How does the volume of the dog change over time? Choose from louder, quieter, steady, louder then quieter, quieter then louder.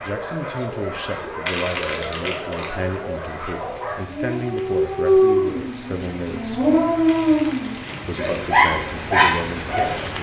louder.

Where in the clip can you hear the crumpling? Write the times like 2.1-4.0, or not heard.
1.4-2.7, 7.0-8.5.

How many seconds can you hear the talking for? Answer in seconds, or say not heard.
9 s.